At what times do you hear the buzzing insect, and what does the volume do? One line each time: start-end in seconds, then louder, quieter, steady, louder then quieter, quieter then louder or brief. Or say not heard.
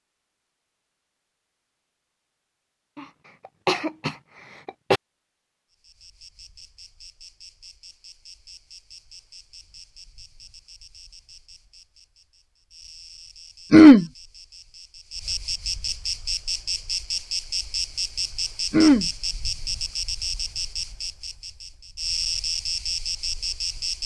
5.7-24.0 louder.